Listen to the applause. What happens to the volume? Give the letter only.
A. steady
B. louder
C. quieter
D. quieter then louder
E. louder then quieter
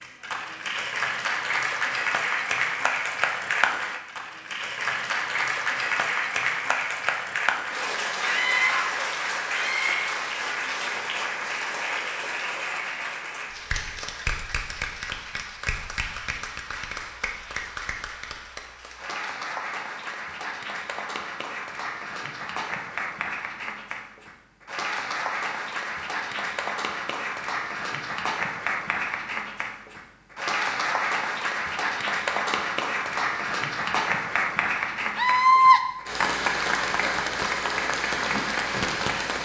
D.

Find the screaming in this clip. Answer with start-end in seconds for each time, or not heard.
8.2-10.2, 35.1-35.8.